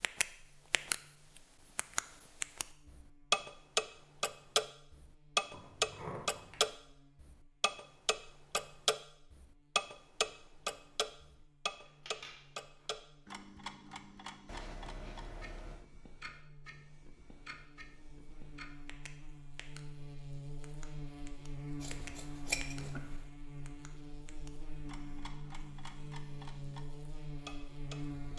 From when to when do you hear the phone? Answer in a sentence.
The phone can be heard from 14.4 to 15.8 s.